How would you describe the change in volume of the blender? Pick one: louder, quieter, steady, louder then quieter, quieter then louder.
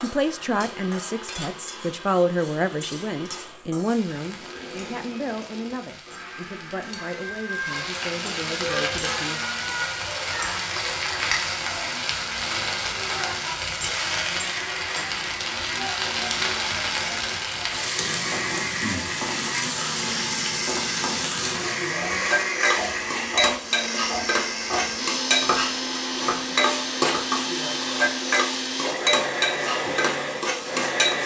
louder.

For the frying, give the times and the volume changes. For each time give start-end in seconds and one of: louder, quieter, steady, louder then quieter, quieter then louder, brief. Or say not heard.
0.0-31.2 louder.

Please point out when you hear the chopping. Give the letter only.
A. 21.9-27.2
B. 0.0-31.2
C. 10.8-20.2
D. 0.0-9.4
A.